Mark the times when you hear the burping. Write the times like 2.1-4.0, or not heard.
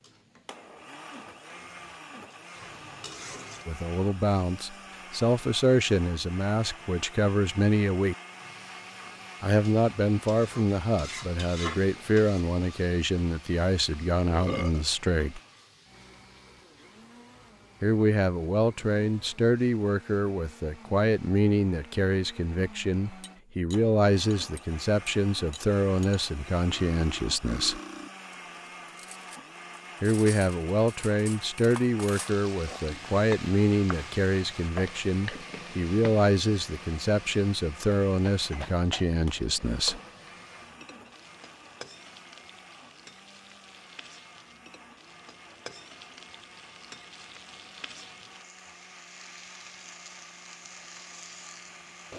13.9-14.8.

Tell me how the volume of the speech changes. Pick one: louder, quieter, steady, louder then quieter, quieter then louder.
steady.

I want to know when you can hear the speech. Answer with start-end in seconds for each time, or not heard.
3.6-8.2, 9.4-15.4, 17.8-27.8, 30.0-40.0.